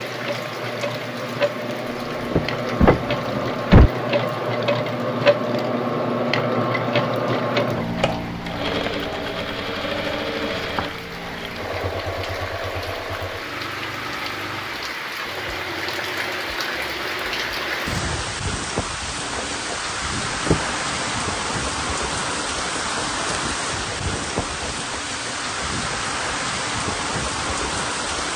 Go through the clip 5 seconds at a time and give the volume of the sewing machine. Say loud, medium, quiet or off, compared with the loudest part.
loud, loud, medium, quiet, quiet, quiet.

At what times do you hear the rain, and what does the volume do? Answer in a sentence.
The rain can be heard from 0.0 to 28.3 s, getting louder.